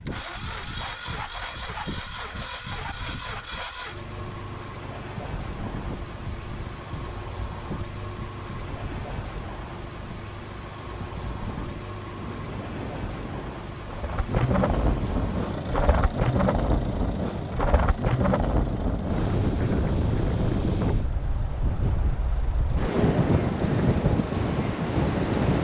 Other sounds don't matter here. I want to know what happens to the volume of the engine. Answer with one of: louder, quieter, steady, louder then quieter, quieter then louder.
quieter.